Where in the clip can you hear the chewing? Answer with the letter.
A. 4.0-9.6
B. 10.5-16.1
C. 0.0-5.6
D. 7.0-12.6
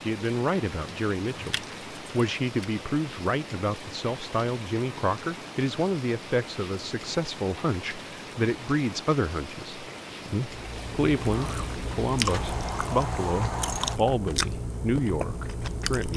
B.